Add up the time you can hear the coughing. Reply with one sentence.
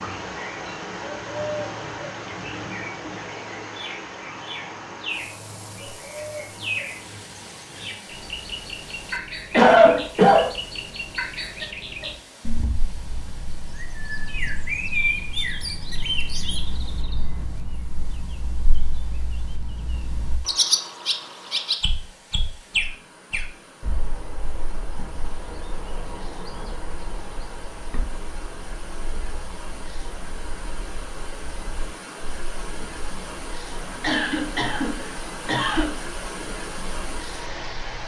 You can hear the coughing for 3 seconds altogether.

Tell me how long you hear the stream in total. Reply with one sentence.
You can hear the stream for 38 seconds altogether.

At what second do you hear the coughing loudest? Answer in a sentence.
The volume of the coughing peaks at 10 seconds.